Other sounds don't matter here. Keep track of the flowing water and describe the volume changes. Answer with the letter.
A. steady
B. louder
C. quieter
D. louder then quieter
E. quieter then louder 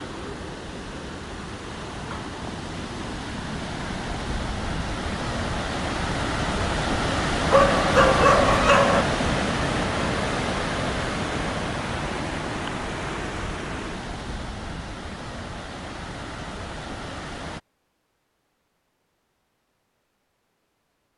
D.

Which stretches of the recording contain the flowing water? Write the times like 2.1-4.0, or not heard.
0.0-17.6.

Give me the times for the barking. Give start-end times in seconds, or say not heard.
7.5-9.1.